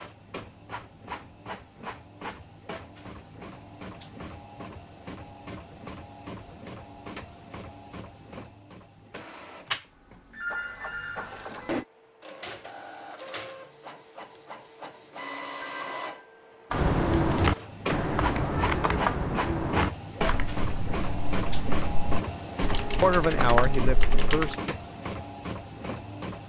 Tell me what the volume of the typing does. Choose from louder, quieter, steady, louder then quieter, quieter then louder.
quieter then louder.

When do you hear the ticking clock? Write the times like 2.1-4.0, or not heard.
not heard.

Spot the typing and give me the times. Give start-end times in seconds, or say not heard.
16.7-24.6.